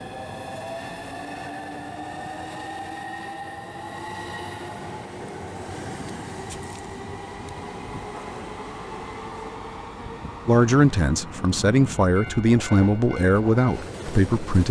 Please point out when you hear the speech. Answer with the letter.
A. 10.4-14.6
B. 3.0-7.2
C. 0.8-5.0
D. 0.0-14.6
A.